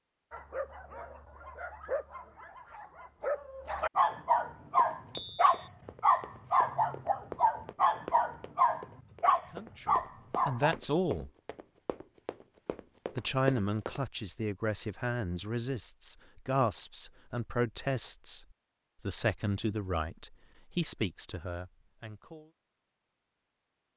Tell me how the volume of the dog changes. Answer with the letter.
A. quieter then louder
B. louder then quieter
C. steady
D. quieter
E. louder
E.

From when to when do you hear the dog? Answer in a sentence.
You can hear the dog from 0.3 to 10.8 s.